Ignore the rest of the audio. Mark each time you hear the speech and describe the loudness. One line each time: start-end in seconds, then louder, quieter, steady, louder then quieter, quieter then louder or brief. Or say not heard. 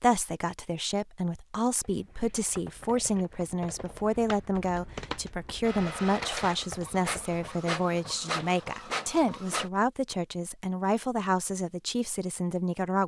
0.0-13.0 steady.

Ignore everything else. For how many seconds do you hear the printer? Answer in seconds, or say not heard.
4 s.